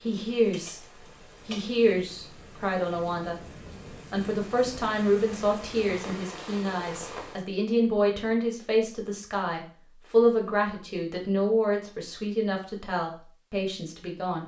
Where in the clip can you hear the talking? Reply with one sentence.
You can hear the talking from 0.0 to 0.8 s, from 1.4 to 3.4 s and from 4.1 to 14.4 s.